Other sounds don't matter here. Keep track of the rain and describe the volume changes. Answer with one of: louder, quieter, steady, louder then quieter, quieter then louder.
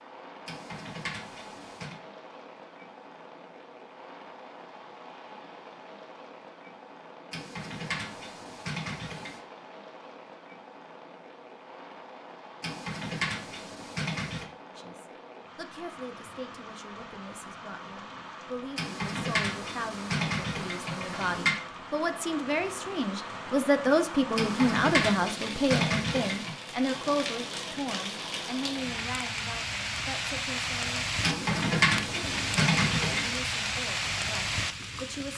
louder.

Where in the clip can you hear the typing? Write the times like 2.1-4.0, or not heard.
0.5-1.9, 7.3-9.4, 12.6-14.4, 18.8-21.6, 24.4-26.6, 31.2-33.3.